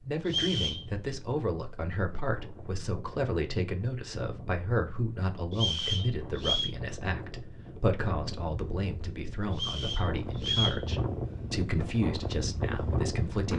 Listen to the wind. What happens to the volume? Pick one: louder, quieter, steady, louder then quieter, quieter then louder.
louder.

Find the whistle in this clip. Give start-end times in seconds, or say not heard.
0.2-0.8, 5.5-6.7, 9.5-10.8.